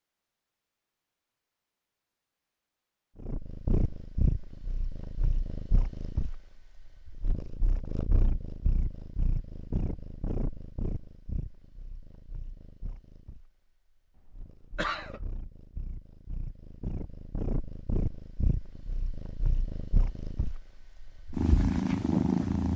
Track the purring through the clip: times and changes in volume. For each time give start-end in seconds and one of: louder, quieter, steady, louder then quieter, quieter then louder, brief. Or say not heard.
3.2-22.7 quieter then louder.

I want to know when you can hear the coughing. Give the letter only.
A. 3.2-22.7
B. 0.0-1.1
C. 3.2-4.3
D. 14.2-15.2
D.